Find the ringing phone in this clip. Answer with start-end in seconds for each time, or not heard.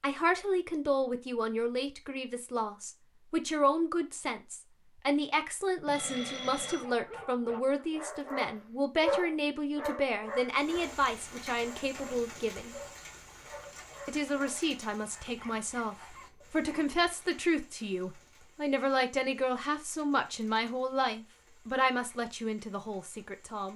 5.8-6.8.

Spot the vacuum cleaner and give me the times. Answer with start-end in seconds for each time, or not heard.
not heard.